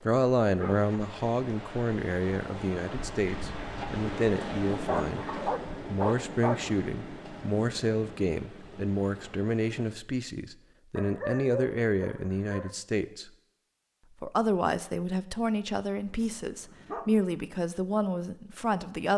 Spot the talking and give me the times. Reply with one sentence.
You can hear the talking from 0.0 to 13.2 s and from 14.2 to 19.1 s.